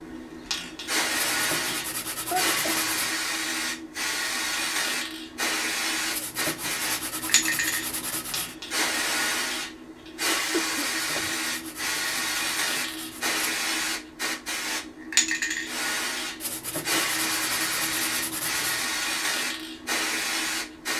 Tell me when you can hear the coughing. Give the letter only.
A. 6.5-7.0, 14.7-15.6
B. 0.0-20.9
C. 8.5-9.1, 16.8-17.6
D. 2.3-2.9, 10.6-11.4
D.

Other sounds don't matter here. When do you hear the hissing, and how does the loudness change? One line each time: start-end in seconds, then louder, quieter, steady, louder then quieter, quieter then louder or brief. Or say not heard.
0.0-20.9 steady.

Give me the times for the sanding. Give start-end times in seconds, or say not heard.
1.1-3.1, 6.1-8.6, 10.9-13.4, 16.4-18.9.